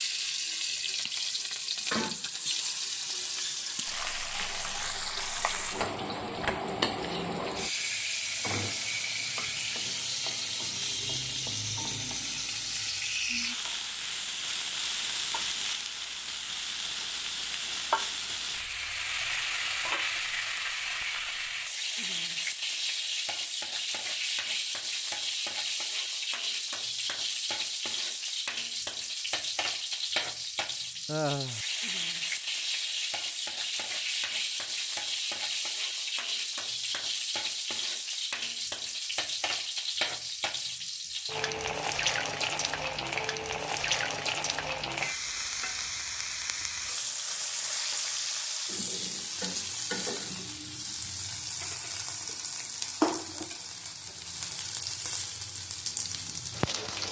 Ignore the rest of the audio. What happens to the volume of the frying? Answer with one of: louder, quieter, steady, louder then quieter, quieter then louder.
steady.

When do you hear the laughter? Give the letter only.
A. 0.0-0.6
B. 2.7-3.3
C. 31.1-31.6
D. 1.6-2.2
C.